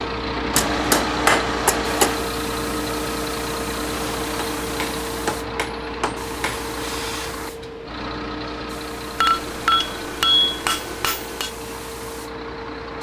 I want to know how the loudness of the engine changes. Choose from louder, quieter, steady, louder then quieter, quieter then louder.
quieter.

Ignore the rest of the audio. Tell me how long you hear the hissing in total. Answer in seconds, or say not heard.
13 s.